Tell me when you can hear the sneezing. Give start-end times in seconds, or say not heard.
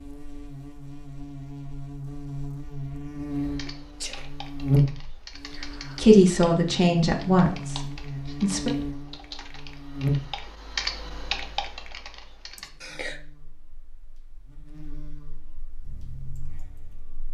3.0-4.3, 12.6-13.2.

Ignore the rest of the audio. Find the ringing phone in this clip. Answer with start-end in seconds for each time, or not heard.
not heard.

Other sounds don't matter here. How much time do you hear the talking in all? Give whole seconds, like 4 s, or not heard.
3 s.